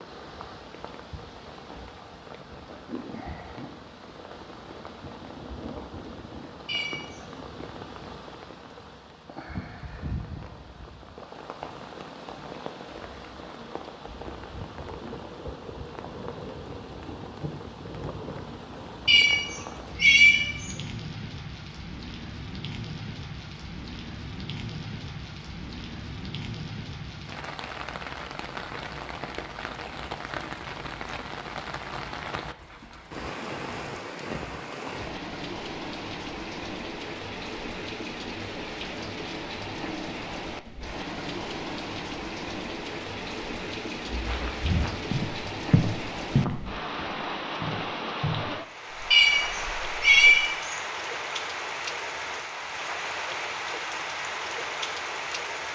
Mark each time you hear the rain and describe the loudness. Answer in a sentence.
The rain can be heard from 0.0 to 55.7 s, getting louder.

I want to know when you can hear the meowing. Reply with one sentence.
The meowing can be heard from 6.7 to 7.2 s, from 19.1 to 20.8 s and from 49.1 to 50.8 s.